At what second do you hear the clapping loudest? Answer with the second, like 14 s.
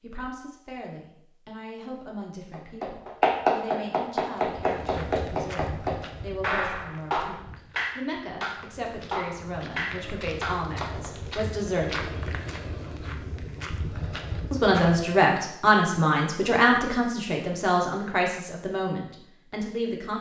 3 s.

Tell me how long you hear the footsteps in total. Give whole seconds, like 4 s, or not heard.
11 s.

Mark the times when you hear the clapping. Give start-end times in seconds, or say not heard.
2.5-11.1.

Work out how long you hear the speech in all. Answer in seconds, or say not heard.
18 s.